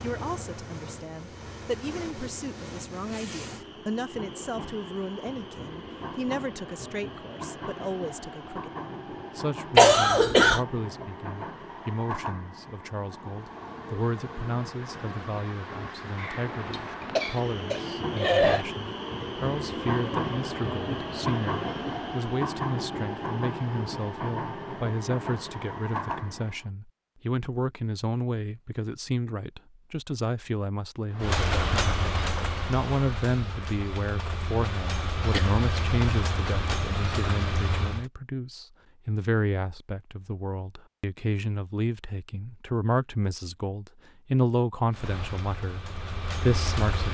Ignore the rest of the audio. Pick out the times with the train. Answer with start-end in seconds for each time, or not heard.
0.0-26.7, 31.1-38.0, 44.9-47.0.